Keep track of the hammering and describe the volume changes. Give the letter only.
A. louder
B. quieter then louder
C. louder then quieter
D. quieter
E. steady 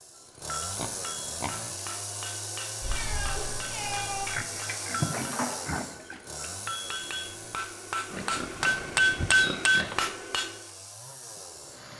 A.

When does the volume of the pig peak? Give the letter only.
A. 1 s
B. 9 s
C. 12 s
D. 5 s
D.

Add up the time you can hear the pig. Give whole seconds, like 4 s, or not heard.
5 s.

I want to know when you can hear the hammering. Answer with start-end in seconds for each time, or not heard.
0.1-10.6.